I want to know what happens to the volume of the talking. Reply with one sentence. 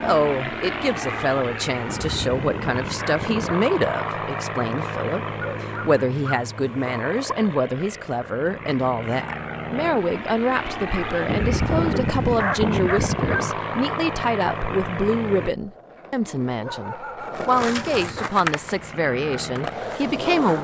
The volume of the talking stays about the same.